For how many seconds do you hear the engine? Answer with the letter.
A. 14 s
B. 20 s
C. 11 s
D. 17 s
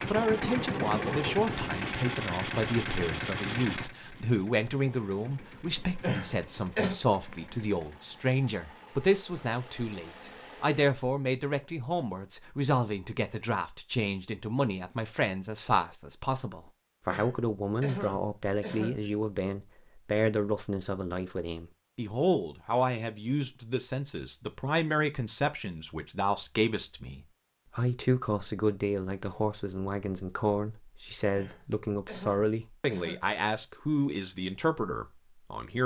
C.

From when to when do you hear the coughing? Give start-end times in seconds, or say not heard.
6.0-7.0, 17.1-19.1, 31.4-33.4.